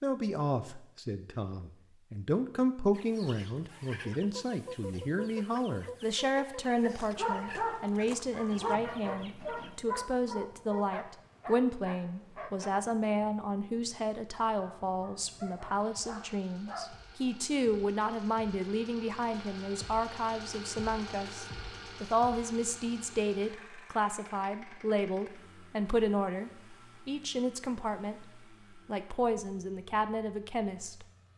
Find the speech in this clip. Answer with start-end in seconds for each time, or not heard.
0.0-28.2, 28.9-31.1.